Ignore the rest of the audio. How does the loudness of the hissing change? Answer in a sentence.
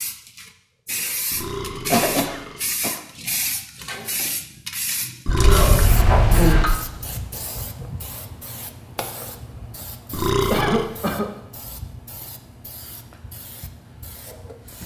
The volume of the hissing goes down.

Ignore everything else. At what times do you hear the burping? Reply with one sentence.
The burping can be heard from 1.3 to 2.8 s, from 5.2 to 5.9 s and from 10.1 to 10.9 s.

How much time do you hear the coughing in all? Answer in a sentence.
The coughing can be heard for 3 seconds in total.